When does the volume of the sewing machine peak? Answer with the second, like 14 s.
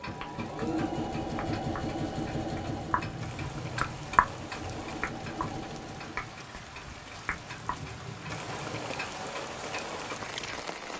1 s.